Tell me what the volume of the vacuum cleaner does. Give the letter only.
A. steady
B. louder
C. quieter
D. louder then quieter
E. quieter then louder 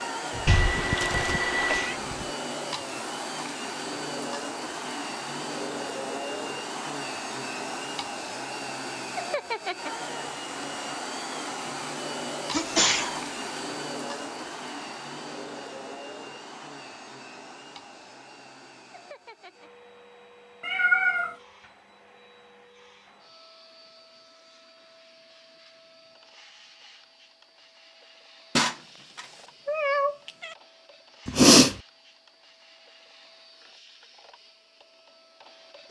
C.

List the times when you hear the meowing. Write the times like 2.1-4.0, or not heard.
0.5-1.9, 20.6-21.4, 28.6-30.6.